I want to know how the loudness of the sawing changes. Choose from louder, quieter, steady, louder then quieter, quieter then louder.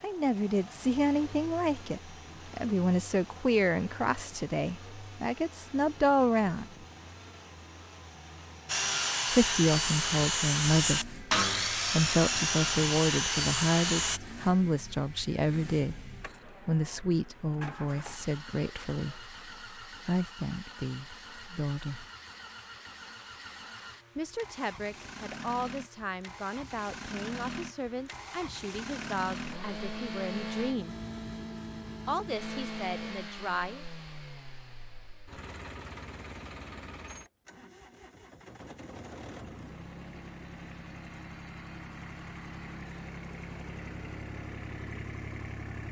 steady.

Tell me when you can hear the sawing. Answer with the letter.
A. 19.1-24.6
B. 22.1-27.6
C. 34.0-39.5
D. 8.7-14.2
D.